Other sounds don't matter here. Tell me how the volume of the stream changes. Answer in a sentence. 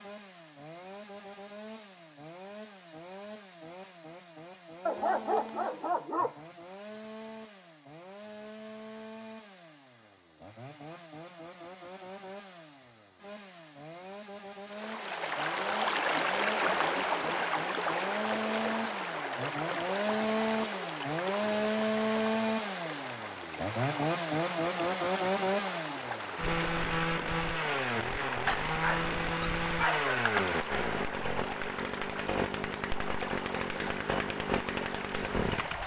The volume of the stream goes down.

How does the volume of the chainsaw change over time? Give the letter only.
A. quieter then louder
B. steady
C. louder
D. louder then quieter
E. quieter
C.